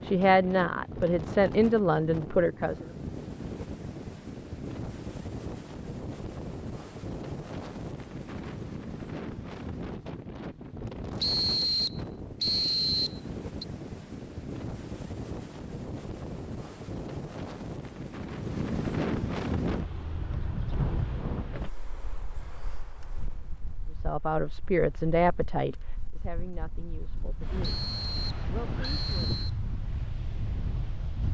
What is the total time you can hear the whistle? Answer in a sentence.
You can hear the whistle for 4 seconds altogether.